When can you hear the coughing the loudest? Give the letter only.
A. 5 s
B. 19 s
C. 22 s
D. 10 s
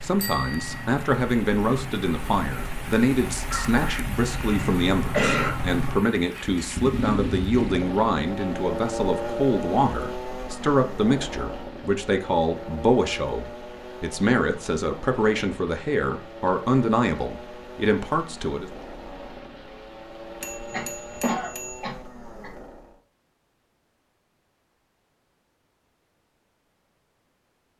A.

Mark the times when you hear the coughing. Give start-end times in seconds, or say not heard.
3.5-5.5, 20.7-22.5.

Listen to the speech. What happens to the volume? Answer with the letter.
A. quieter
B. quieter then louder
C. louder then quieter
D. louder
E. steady
E.